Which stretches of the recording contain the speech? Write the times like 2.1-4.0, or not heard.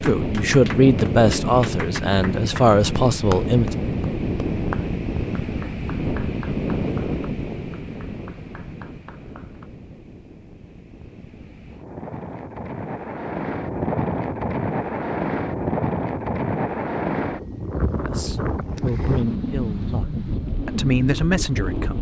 0.0-3.8, 18.0-21.9.